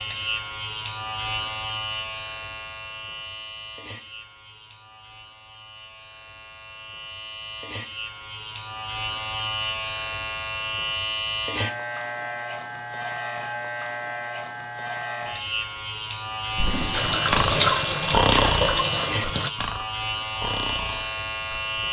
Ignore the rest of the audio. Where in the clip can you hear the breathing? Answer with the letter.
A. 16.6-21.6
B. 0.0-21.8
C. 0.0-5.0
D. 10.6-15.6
A.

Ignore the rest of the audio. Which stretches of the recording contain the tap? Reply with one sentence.
You can hear the tap from 16.9 to 19.5 s.